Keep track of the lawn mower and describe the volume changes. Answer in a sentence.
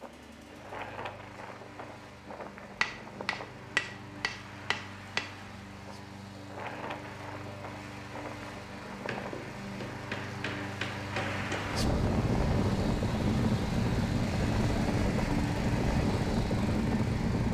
The loudness of the lawn mower goes up.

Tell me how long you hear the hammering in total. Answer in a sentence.
You can hear the hammering for 5 seconds altogether.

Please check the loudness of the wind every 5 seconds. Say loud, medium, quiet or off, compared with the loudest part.
quiet, quiet, loud, loud.